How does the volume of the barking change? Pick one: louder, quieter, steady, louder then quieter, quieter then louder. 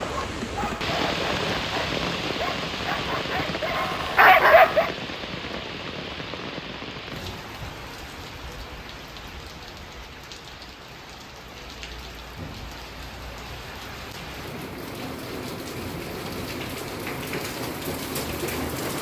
louder.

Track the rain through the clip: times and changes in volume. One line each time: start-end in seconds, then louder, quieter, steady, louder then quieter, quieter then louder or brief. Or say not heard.
0.0-18.9 quieter then louder.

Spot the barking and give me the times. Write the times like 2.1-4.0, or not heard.
0.0-4.9.